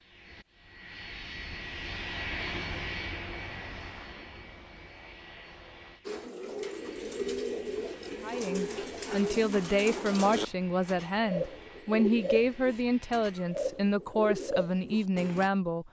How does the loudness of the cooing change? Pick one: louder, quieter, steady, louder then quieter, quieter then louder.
steady.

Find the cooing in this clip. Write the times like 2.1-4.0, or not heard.
6.0-15.5.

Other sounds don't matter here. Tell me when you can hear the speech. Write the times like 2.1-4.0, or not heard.
8.2-15.8.